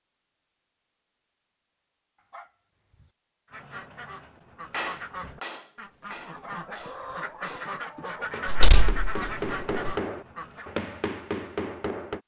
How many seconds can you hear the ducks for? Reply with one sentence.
The ducks can be heard for 7 seconds in total.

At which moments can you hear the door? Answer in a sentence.
The door can be heard from 8.4 to 9.9 s.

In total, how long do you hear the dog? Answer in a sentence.
The dog can be heard for 2 seconds in total.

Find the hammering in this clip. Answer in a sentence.
The hammering can be heard from 4.7 to 12.2 s.